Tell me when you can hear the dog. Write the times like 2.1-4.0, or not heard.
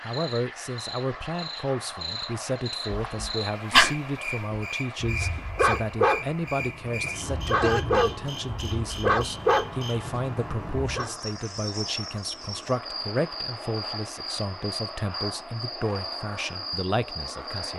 2.9-11.1.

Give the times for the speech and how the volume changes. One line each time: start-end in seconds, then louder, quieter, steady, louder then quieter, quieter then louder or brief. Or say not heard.
0.0-17.7 steady.